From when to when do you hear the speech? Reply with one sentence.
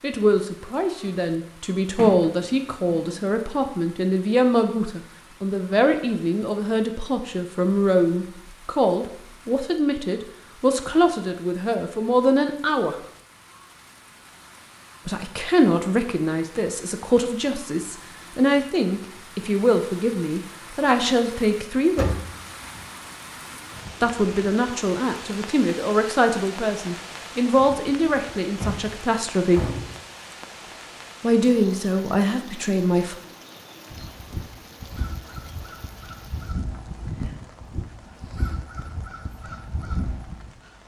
The speech can be heard from 0.0 to 12.9 s, from 15.1 to 22.1 s, from 24.0 to 29.7 s and from 31.2 to 33.1 s.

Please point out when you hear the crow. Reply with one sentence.
The crow can be heard from 33.9 to 40.5 s.